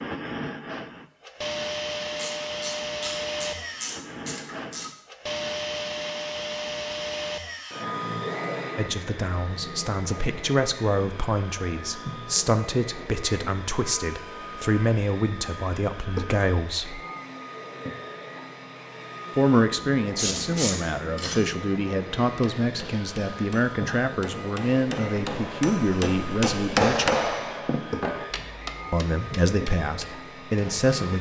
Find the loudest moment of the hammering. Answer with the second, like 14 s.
27 s.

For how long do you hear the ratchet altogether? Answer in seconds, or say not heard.
4 s.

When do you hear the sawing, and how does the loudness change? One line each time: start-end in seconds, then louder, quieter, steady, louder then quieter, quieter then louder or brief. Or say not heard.
not heard.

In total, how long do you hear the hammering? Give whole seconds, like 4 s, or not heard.
9 s.